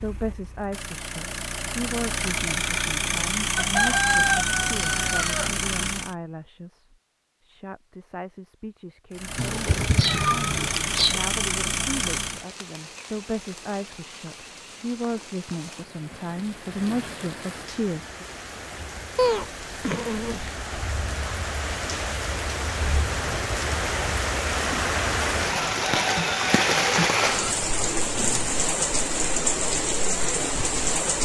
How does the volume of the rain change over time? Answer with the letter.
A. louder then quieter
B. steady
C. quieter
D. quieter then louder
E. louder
E.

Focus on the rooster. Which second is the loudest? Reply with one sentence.
The loudest moment of the rooster is at 4 seconds.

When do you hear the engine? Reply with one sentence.
The engine can be heard from 0.0 to 6.2 s and from 9.1 to 12.4 s.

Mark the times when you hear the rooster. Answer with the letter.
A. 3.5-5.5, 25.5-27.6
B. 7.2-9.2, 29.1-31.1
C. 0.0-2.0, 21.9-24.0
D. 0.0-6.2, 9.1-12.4
A.